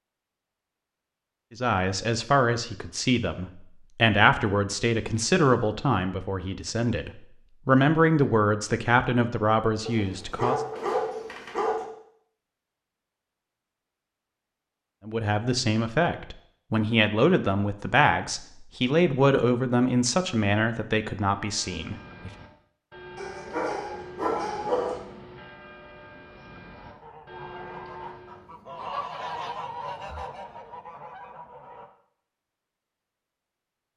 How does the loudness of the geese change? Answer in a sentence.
The volume of the geese goes up, then down.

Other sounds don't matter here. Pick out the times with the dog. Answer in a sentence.
The dog can be heard from 9.8 to 11.8 s and from 23.1 to 25.0 s.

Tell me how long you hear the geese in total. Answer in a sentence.
You can hear the geese for 5 seconds altogether.